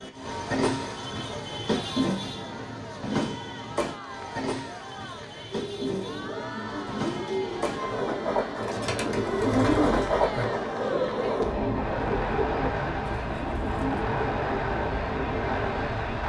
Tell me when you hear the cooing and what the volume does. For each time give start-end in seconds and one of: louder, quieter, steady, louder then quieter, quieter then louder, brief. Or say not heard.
5.5-14.1 louder then quieter.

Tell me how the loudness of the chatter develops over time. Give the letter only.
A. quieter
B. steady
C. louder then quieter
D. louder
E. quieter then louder
D.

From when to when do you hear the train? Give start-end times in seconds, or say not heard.
0.0-16.2.